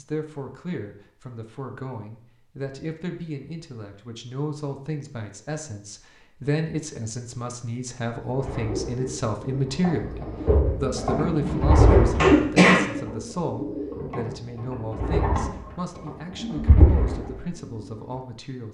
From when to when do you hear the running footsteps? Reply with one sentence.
You can't hear the running footsteps here.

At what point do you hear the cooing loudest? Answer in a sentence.
The loudest moment of the cooing is at 12 seconds.